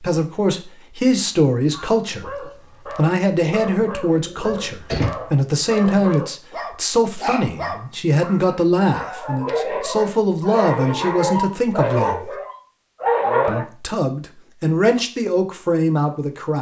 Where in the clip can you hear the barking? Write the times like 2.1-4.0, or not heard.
1.7-13.7.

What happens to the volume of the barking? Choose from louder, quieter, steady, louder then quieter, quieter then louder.
louder.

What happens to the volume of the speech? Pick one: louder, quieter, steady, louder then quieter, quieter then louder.
steady.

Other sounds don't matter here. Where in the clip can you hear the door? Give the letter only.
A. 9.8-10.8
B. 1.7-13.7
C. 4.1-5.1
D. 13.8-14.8
C.